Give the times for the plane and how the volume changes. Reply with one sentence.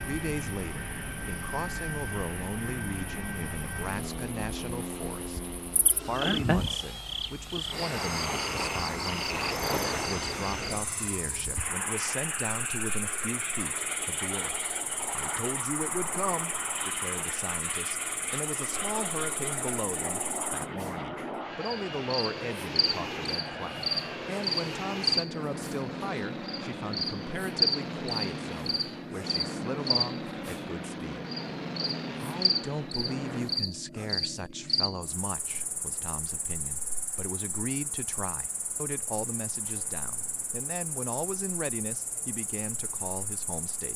You can hear the plane from 0.0 to 33.6 s, at a steady volume.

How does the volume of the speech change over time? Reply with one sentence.
The loudness of the speech stays about the same.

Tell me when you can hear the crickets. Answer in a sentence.
You can hear the crickets from 0.0 to 43.9 s.